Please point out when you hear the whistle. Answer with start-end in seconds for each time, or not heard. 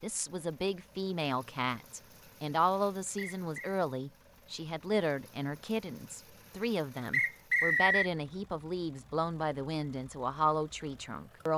3.1-3.8, 7.1-8.1.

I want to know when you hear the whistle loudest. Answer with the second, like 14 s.
8 s.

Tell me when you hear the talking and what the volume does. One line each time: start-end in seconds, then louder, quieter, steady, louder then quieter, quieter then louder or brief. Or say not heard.
0.0-11.5 steady.